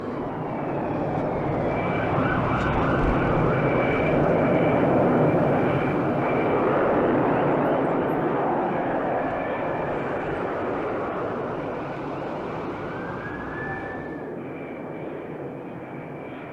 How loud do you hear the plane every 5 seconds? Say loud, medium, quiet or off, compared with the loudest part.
loud, loud, medium, quiet.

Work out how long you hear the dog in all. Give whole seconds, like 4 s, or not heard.
not heard.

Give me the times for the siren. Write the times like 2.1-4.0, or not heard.
0.0-14.3.